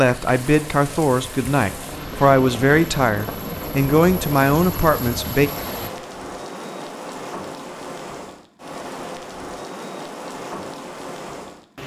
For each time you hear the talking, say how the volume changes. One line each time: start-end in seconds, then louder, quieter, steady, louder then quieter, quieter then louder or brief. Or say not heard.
0.0-5.5 steady.